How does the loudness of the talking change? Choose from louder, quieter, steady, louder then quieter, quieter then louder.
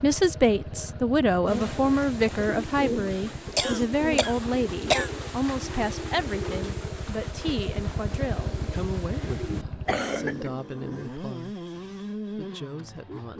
quieter.